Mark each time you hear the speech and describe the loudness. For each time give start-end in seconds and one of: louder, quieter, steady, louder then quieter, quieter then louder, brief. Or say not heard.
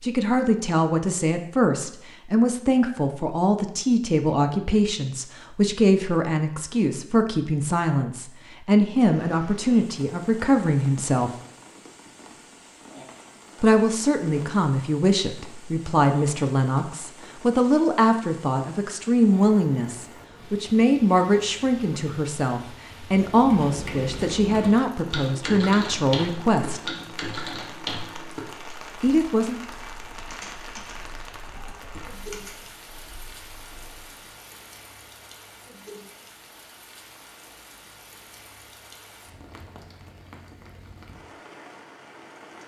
0.0-11.3 steady
13.6-26.8 steady
29.0-29.6 brief.